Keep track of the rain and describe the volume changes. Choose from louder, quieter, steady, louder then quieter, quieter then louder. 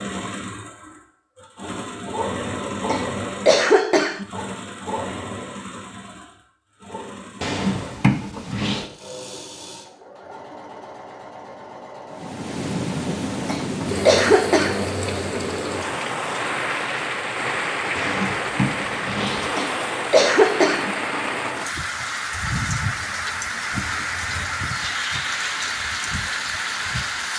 steady.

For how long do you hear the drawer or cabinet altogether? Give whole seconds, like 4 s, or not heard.
3 s.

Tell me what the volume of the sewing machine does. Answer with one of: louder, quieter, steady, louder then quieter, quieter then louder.
quieter.